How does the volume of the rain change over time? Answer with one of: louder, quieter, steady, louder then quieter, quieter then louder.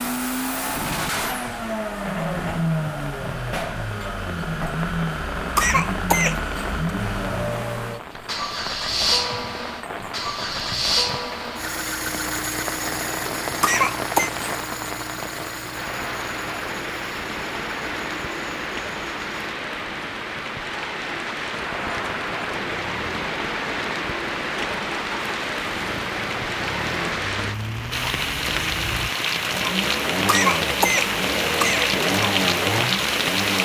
louder.